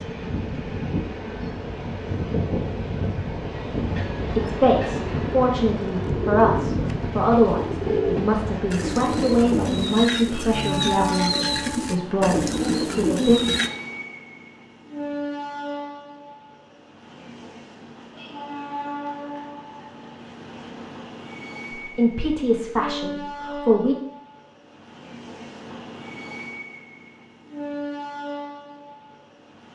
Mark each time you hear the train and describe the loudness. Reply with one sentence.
You can hear the train from 0.0 to 29.7 s, getting quieter.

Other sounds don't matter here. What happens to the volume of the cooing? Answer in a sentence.
The volume of the cooing stays about the same.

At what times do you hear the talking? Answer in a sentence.
You can hear the talking from 4.3 to 13.4 s and from 21.7 to 23.9 s.